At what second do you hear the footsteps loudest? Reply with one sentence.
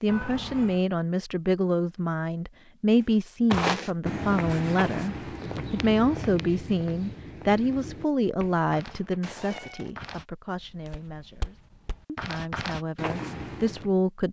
The loudest moment of the footsteps is at 4 seconds.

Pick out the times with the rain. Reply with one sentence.
You can't hear the rain here.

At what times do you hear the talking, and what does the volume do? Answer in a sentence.
The talking can be heard from 0.0 to 14.2 s, getting quieter.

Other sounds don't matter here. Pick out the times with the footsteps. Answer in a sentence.
You can hear the footsteps from 3.5 to 13.9 s.